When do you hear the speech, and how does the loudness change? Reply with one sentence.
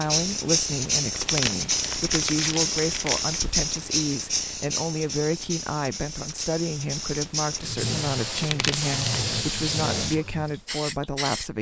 You can hear the speech from 0.0 to 11.5 s, at a steady volume.